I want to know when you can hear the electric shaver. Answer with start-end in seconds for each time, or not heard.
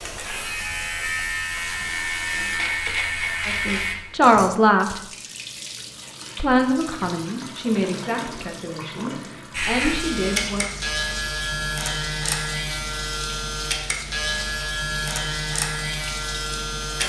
0.0-4.0, 9.5-17.0.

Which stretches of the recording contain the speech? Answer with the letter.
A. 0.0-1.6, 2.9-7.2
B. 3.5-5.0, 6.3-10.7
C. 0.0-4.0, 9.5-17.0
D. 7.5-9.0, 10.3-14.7
B.